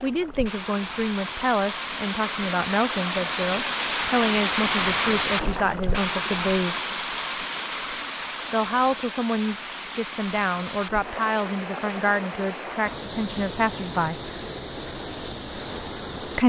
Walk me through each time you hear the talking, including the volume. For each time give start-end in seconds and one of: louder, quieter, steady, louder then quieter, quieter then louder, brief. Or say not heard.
0.0-6.8 steady
8.5-14.2 steady.